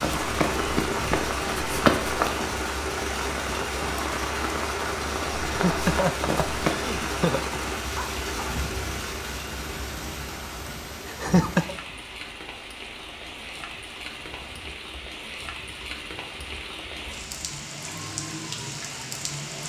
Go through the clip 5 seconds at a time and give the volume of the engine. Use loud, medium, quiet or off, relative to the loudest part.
loud, loud, quiet, quiet.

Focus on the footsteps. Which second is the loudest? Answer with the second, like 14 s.
2 s.